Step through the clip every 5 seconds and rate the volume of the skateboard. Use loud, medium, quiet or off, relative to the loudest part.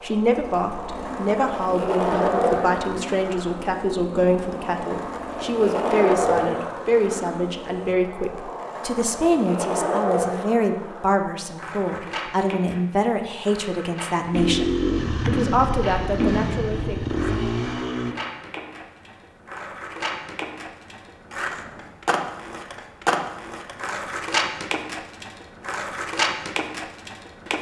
loud, loud, medium, medium, loud, loud.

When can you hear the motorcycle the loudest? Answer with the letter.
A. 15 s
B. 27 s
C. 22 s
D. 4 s
A.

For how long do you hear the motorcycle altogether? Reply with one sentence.
You can hear the motorcycle for 12 seconds altogether.